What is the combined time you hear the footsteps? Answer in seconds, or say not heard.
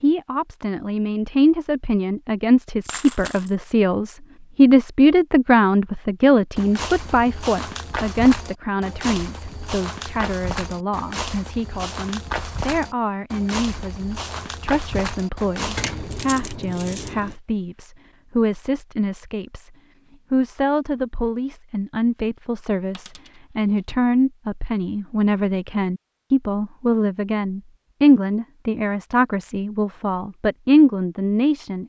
10 s.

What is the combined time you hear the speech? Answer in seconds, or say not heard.
31 s.